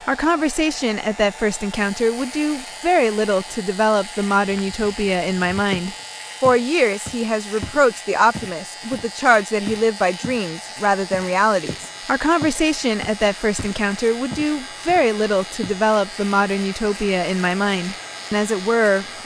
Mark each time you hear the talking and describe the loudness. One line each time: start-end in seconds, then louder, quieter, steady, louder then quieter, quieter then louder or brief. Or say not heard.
0.1-19.2 steady.